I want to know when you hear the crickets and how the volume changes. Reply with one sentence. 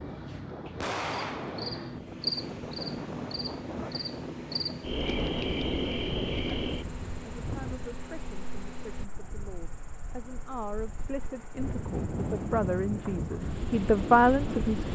You can hear the crickets from 0.0 to 14.8 s, getting quieter.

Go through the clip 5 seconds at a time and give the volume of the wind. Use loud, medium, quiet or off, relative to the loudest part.
medium, medium, loud.